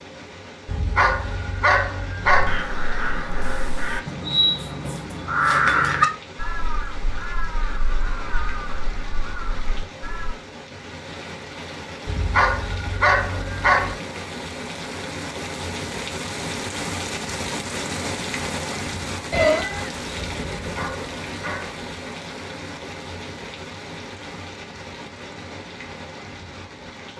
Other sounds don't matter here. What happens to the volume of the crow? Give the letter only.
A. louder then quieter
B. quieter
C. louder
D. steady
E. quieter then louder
A.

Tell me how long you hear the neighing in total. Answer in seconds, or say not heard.
2 s.